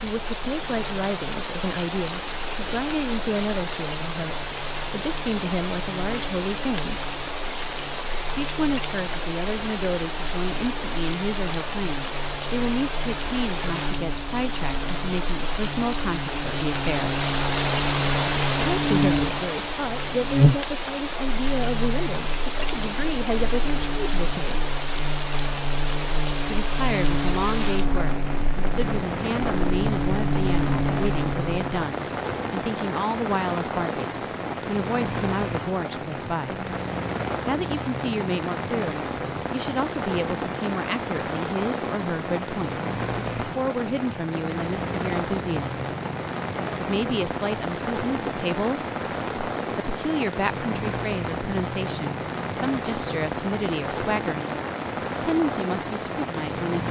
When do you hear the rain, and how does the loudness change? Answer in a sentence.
You can hear the rain from 0.0 to 56.8 s, at a steady volume.